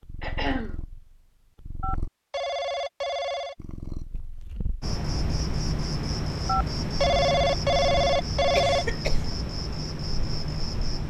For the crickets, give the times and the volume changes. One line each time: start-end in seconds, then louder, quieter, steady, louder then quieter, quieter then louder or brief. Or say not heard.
4.8-11.0 steady.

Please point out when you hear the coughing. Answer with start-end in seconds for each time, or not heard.
0.2-0.8, 8.6-9.2.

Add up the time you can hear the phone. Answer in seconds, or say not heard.
4 s.